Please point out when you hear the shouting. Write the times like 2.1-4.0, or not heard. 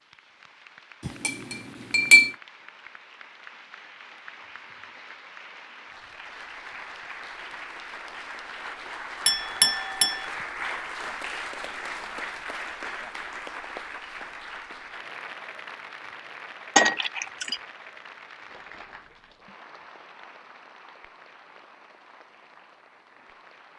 not heard.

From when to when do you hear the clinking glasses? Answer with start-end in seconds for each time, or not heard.
1.1-2.4, 9.2-10.2, 16.8-17.6.